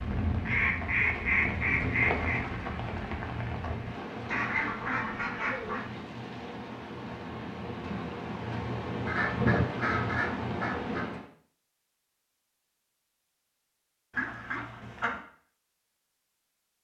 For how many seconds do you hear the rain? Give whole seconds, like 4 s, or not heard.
11 s.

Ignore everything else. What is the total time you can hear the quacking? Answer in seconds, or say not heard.
7 s.